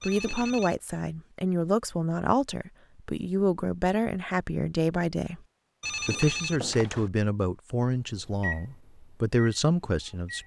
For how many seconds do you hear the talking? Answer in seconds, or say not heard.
10 s.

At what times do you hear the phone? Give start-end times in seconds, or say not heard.
0.0-0.8, 5.8-7.1.